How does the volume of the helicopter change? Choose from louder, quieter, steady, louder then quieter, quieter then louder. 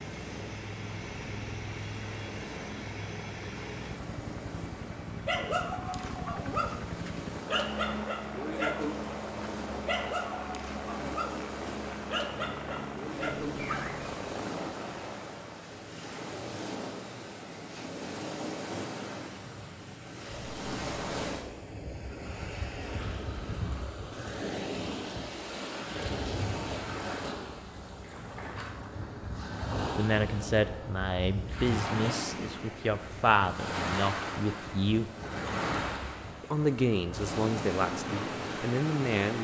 steady.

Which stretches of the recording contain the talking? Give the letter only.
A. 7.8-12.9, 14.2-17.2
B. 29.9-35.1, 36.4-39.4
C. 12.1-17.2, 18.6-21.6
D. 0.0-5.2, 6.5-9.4
B.